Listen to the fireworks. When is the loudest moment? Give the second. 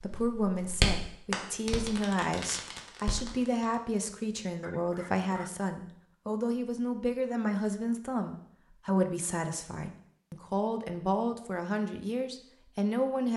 1 s.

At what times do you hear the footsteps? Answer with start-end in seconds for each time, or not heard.
not heard.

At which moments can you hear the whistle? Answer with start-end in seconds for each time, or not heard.
not heard.